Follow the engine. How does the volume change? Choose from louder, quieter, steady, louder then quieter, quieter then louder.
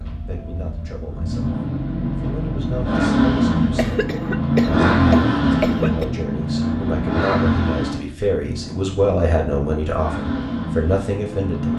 louder then quieter.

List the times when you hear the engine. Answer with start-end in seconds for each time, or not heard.
0.0-11.7.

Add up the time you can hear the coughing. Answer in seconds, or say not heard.
2 s.